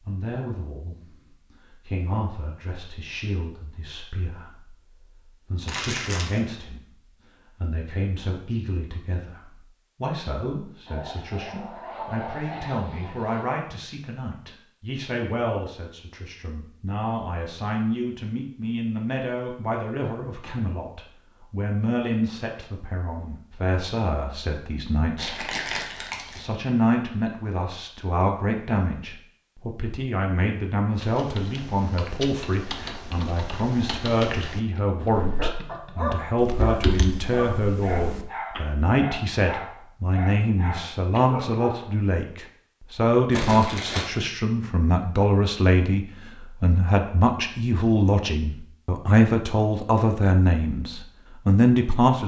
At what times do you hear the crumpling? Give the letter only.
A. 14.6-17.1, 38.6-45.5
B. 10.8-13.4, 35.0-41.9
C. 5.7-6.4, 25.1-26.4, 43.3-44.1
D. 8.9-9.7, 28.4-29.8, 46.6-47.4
C.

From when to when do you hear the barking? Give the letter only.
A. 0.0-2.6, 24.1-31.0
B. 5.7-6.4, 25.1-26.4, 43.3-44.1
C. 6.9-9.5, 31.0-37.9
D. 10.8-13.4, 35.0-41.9
D.